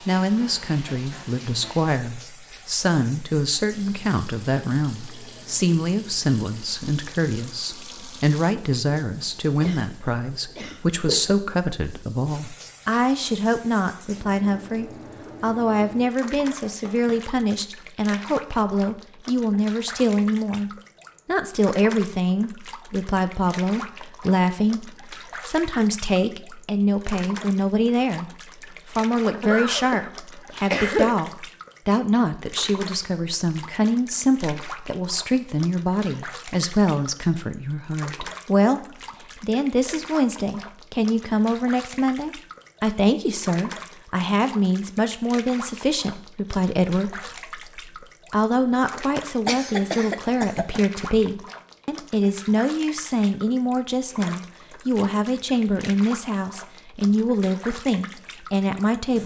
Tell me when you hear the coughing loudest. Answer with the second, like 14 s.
31 s.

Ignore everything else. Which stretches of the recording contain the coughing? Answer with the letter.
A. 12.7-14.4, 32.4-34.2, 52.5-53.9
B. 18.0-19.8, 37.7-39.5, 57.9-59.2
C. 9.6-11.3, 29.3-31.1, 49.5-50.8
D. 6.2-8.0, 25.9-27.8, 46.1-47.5
C.